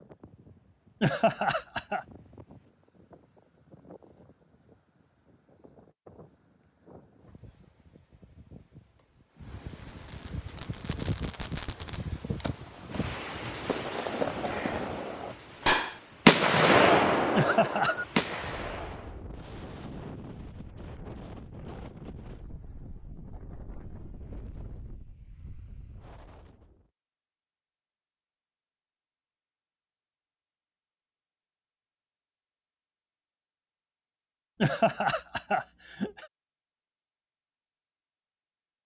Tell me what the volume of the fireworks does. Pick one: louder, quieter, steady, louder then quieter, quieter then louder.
louder then quieter.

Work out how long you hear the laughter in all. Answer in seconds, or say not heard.
3 s.